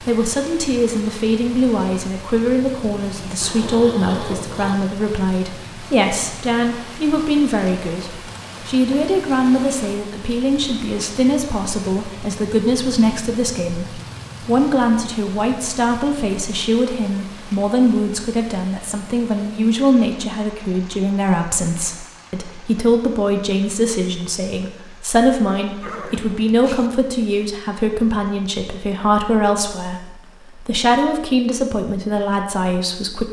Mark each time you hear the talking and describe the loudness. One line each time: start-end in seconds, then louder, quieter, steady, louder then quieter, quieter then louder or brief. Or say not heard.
0.0-33.2 steady.